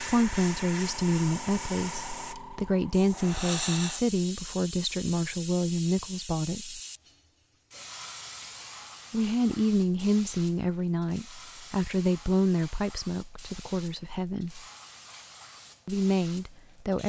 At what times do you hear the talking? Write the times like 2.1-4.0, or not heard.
0.0-6.8, 9.1-14.6, 15.8-17.0.